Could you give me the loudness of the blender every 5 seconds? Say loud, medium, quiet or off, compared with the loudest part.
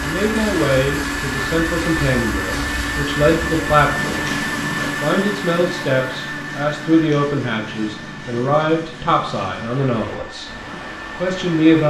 loud, medium, medium.